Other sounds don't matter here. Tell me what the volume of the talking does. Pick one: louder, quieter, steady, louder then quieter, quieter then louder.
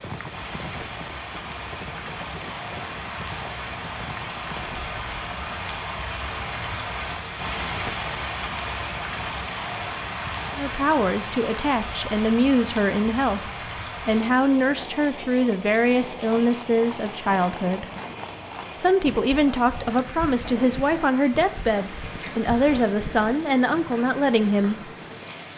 steady.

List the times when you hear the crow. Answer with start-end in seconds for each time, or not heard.
not heard.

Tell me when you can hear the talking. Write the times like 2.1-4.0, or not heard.
10.6-17.9, 18.8-24.9.